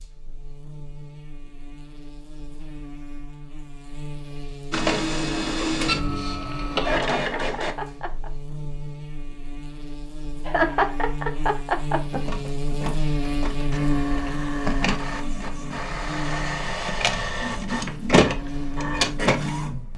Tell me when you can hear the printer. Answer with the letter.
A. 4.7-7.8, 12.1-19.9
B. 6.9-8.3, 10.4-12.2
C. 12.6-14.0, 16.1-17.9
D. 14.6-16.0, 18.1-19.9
A.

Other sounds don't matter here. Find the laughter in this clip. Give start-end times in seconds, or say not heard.
6.9-8.3, 10.4-12.2.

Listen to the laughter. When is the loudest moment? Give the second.
11 s.